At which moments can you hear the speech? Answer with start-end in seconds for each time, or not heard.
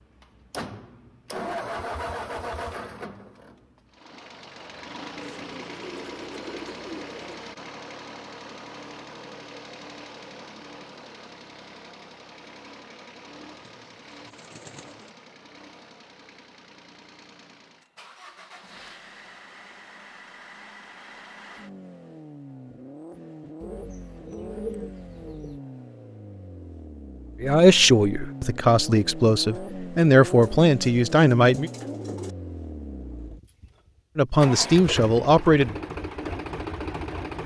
27.4-31.7, 34.1-35.8.